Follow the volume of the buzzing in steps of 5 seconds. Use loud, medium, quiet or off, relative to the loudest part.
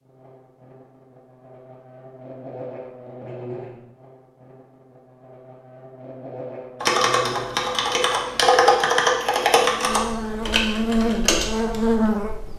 quiet, quiet, loud.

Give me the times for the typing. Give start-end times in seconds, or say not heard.
6.8-12.1.